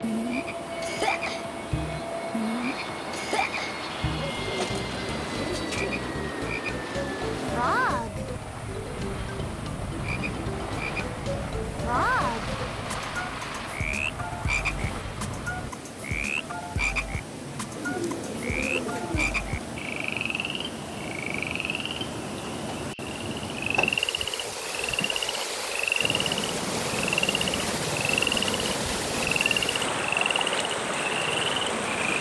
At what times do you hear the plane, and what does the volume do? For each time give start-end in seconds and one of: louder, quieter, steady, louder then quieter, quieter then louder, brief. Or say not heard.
0.0-15.7 steady
26.0-32.1 quieter.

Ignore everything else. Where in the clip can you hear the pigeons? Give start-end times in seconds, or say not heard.
3.9-5.9, 17.8-19.4.